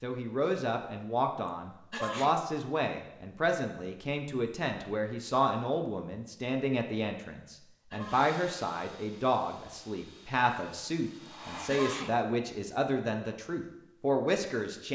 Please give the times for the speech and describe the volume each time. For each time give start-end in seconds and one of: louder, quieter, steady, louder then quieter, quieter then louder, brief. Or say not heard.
0.0-14.9 steady.